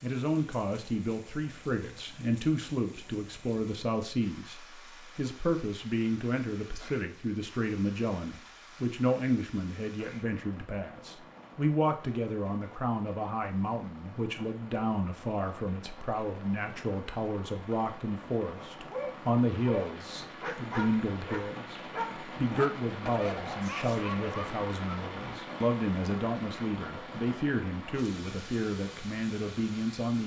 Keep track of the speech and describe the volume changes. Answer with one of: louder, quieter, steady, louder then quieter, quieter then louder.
steady.